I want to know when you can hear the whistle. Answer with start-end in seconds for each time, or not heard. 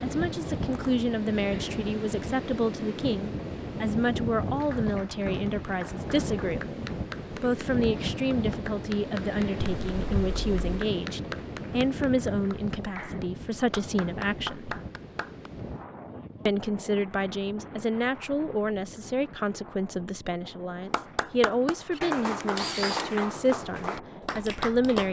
not heard.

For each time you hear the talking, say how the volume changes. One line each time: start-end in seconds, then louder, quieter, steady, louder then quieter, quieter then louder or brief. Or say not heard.
0.0-14.8 steady
16.4-25.0 steady.